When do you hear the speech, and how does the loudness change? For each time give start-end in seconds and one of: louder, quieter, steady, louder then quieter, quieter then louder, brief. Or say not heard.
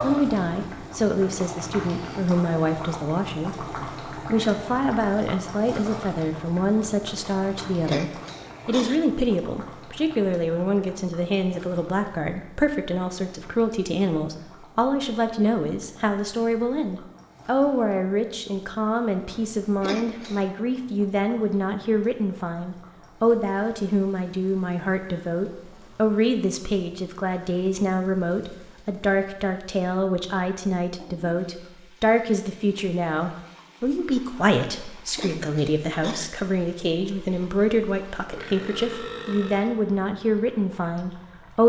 0.0-41.6 steady.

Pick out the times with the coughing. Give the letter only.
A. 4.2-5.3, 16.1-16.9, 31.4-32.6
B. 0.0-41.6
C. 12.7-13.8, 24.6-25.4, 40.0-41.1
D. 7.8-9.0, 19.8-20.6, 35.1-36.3
D.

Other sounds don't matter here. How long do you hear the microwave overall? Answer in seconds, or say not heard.
not heard.